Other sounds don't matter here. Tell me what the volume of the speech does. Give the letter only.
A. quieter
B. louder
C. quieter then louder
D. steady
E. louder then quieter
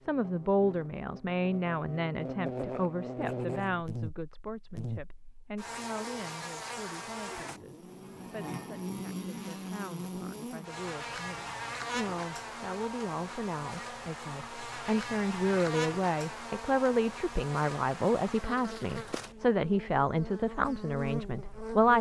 C.